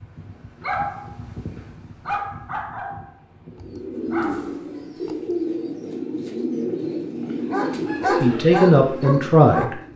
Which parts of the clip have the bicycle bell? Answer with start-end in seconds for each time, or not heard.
not heard.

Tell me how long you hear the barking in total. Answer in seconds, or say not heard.
7 s.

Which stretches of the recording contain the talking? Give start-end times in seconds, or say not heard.
8.2-9.8.